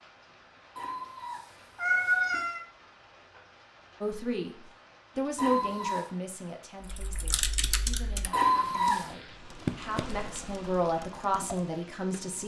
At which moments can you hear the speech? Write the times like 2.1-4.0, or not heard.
4.0-12.4.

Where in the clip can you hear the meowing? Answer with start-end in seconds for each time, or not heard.
0.8-2.6, 5.3-6.0, 8.3-9.1.